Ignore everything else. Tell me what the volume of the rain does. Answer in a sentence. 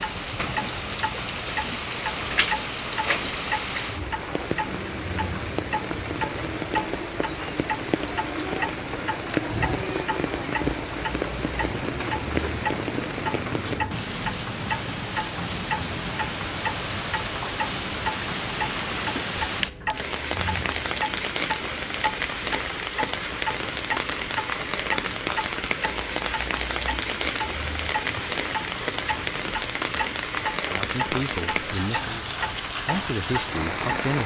The loudness of the rain stays about the same.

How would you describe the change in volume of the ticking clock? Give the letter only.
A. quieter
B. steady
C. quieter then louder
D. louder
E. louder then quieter
B.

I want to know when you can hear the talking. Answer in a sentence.
The talking can be heard from 30.6 to 34.2 s.